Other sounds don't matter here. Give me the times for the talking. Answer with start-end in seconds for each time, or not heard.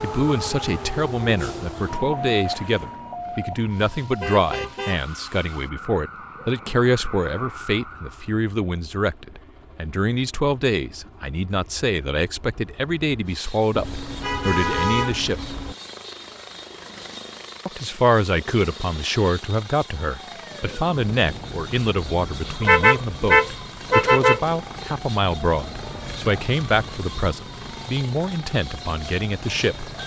0.0-15.3, 17.6-29.9.